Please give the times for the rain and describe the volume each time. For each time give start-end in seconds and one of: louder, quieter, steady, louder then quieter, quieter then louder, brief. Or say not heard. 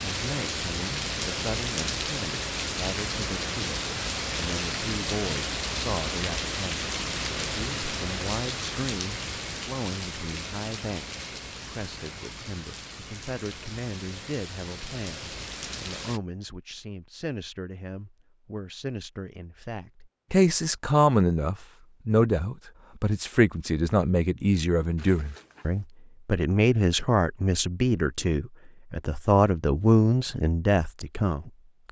0.0-16.2 quieter.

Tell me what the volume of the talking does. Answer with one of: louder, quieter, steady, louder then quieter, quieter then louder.
louder.